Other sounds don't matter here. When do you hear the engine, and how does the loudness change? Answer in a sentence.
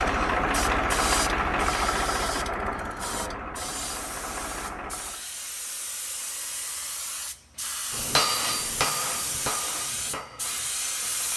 The engine can be heard from 0.0 to 5.2 s, getting quieter.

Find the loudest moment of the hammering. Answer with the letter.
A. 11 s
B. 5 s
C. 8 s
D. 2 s
C.